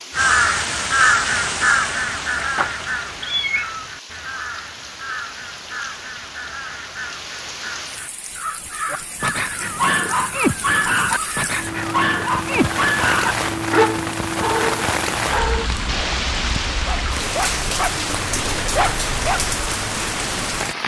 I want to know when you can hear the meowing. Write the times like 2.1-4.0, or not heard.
2.5-3.9.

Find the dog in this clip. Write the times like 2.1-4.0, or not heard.
8.9-19.4.